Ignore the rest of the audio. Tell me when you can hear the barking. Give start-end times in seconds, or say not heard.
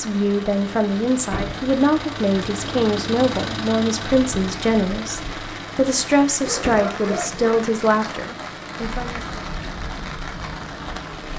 6.4-7.5.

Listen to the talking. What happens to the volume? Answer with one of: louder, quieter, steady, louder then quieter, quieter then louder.
steady.